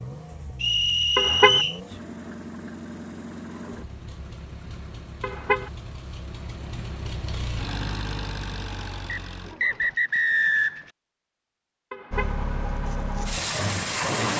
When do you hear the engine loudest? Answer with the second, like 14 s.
14 s.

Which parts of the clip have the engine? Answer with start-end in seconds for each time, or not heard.
0.0-9.9, 12.1-14.3.